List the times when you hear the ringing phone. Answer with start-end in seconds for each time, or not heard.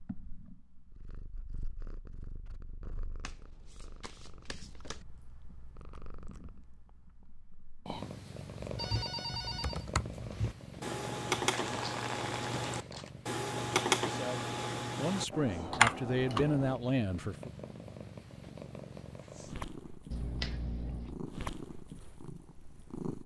8.8-9.8.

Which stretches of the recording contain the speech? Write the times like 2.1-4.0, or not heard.
14.1-17.5.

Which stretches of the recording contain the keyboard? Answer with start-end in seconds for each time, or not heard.
8.6-16.8.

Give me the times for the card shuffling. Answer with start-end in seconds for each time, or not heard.
3.2-5.0, 11.5-13.1, 20.1-21.2.